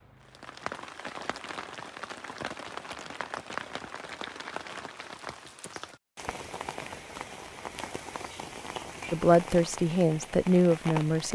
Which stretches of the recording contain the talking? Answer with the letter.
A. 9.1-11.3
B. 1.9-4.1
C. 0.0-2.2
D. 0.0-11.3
A.